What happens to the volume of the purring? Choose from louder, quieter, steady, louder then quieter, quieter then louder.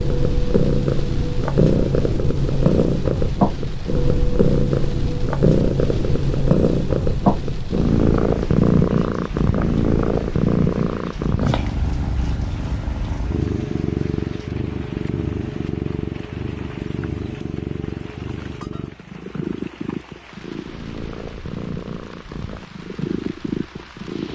quieter.